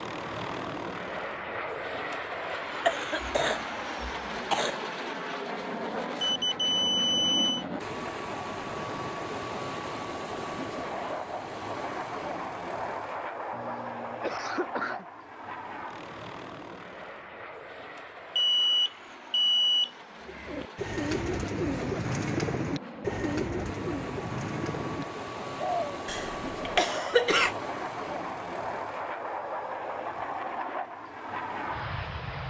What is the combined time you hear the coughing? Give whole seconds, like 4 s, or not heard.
5 s.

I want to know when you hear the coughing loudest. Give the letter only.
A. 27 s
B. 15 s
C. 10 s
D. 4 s
A.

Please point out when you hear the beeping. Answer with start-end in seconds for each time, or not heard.
6.2-7.7, 18.4-19.9.